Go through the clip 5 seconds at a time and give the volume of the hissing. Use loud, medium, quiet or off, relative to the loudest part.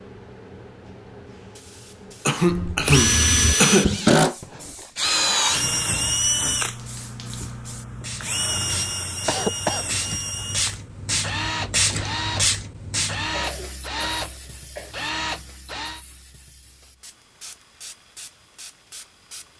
quiet, medium, loud, quiet.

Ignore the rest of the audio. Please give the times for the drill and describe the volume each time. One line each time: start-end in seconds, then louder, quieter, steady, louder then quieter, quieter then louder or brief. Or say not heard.
2.5-16.1 quieter.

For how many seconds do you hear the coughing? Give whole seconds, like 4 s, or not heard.
4 s.